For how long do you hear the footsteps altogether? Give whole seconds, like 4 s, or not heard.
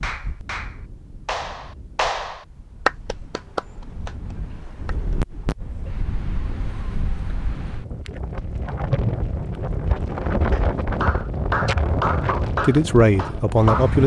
not heard.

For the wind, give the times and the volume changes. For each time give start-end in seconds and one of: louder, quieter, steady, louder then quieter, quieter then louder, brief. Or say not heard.
0.0-14.0 louder.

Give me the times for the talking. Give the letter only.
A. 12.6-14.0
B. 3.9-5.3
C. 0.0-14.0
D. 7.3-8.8
A.